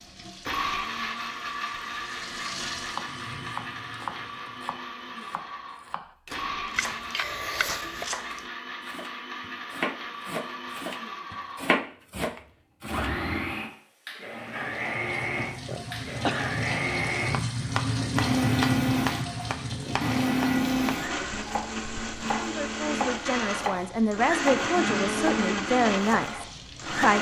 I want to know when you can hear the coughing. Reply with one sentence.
You can hear the coughing from 6.8 to 8.1 s and from 15.5 to 16.5 s.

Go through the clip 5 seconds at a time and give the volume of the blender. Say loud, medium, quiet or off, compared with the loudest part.
medium, medium, medium, loud, loud, loud.